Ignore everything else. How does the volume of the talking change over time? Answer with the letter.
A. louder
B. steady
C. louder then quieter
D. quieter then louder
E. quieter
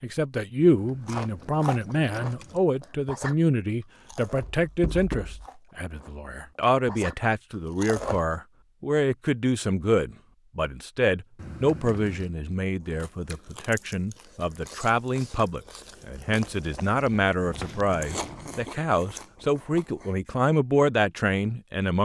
B.